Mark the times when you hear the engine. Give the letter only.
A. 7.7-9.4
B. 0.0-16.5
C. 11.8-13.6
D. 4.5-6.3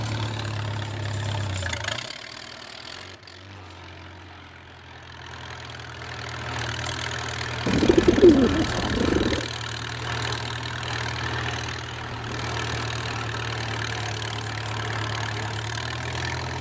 B.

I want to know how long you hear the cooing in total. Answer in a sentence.
The cooing can be heard for 2 seconds in total.